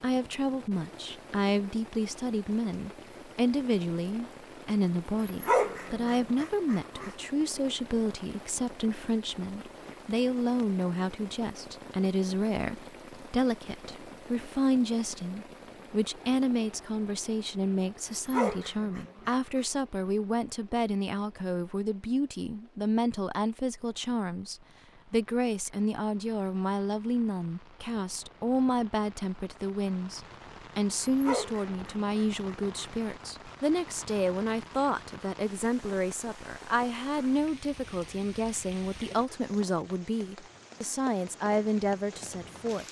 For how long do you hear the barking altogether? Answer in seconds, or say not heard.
5 s.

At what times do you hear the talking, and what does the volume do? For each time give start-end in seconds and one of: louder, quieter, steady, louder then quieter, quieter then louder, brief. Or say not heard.
0.0-42.8 steady.